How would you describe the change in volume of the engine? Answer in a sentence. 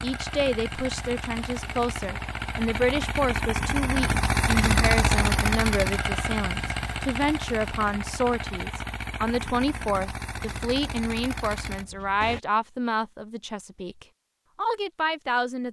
The loudness of the engine goes up, then down.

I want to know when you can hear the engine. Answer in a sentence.
The engine can be heard from 0.0 to 12.4 s.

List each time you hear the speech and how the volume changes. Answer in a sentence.
You can hear the speech from 0.0 to 15.6 s, at a steady volume.